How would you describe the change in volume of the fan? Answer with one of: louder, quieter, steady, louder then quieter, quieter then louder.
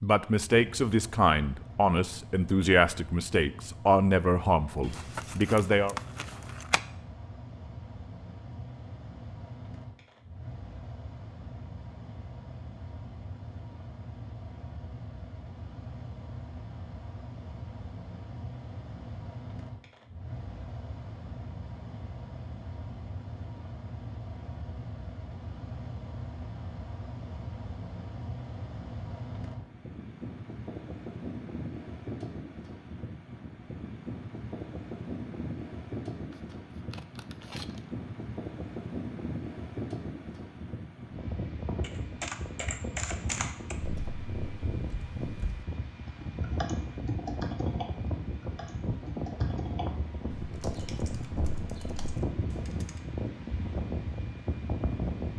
louder.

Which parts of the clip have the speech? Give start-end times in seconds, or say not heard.
0.0-6.0.